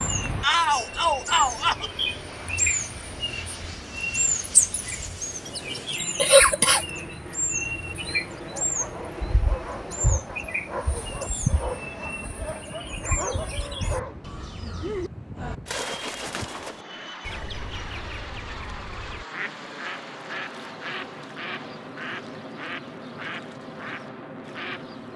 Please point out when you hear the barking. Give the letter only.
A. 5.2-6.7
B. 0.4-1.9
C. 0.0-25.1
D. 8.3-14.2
D.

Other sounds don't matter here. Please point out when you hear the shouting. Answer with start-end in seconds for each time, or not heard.
0.4-1.9.